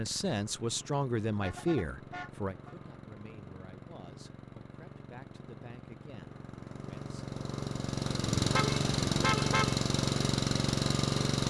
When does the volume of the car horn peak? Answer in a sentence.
The loudest moment of the car horn is at 9 seconds.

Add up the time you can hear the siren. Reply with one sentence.
The siren can't be heard in this clip.